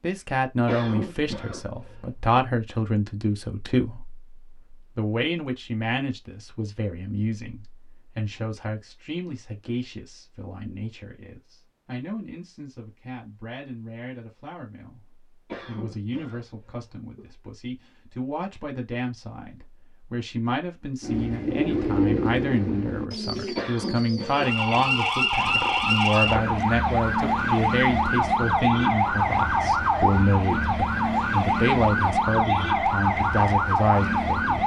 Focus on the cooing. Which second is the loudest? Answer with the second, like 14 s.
22 s.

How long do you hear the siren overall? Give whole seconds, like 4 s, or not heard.
10 s.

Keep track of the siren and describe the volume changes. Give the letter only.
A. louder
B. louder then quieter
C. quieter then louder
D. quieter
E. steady
E.